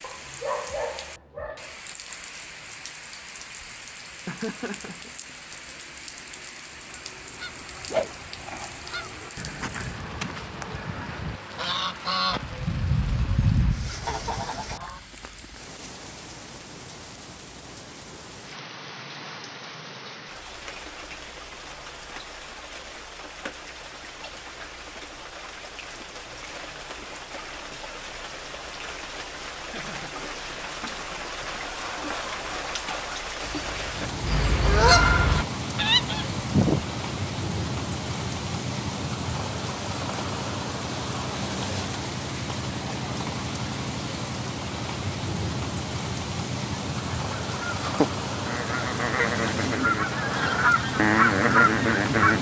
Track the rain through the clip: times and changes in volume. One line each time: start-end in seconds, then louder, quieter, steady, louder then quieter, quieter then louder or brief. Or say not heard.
0.0-52.3 louder.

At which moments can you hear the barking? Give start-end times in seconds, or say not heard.
0.0-1.8.